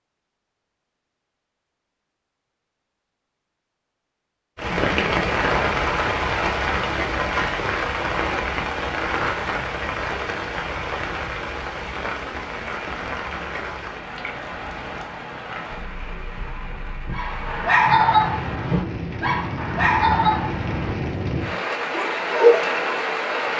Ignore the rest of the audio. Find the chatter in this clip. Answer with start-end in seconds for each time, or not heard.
not heard.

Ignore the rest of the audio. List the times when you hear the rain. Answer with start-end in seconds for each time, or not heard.
4.5-23.5.